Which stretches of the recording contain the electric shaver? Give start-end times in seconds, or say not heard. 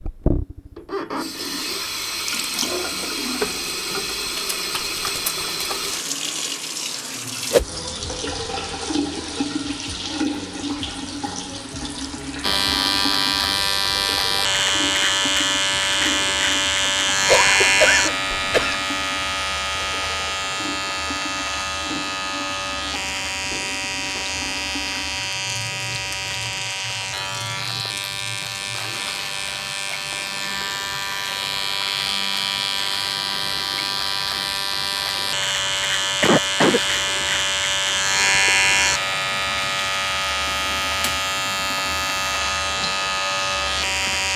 12.4-44.3.